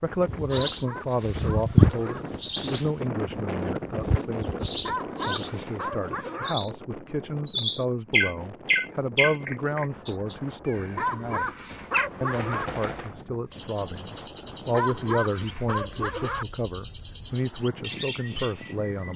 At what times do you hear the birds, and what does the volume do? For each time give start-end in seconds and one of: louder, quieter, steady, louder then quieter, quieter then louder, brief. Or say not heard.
0.0-19.1 quieter.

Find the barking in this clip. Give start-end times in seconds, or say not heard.
0.5-2.2, 4.8-6.5, 10.9-12.7, 14.7-16.4.